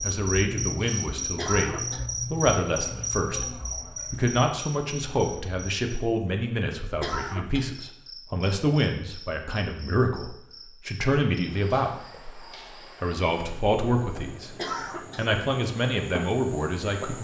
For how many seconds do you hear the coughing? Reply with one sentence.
You can hear the coughing for 2 seconds altogether.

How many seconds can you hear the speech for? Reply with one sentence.
You can hear the speech for 16 seconds altogether.